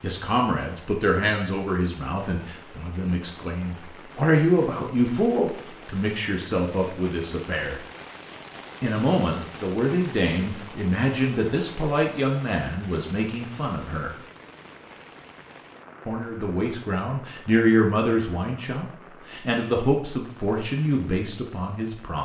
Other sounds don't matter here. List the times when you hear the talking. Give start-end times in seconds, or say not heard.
0.0-7.8, 8.8-14.1, 16.1-22.1.